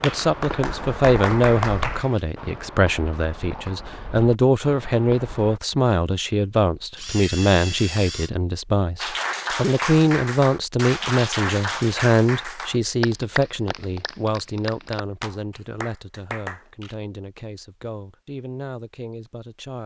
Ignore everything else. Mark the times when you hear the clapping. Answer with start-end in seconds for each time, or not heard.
0.0-2.1, 9.0-16.6.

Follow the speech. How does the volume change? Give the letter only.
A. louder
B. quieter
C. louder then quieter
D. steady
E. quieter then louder
B.